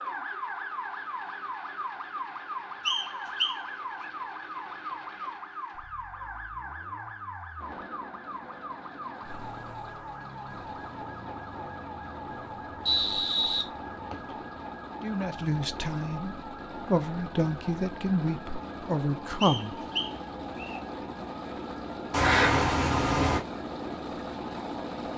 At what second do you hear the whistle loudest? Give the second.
13 s.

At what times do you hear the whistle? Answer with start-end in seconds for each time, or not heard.
2.9-3.5, 12.8-14.3, 19.4-20.8.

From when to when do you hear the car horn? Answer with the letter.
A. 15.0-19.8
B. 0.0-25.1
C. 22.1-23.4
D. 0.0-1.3
C.